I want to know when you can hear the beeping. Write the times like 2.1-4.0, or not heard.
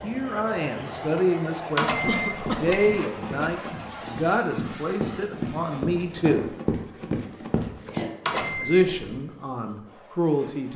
1.8-3.0, 8.2-9.2.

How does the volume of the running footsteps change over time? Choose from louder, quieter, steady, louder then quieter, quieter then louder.
louder.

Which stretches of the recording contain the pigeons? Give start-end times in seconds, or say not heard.
not heard.